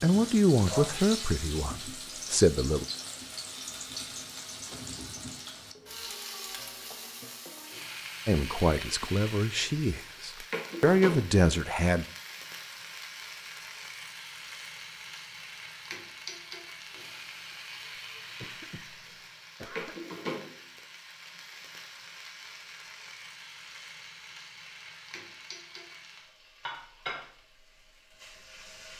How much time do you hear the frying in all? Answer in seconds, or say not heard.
29 s.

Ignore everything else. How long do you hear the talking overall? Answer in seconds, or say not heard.
7 s.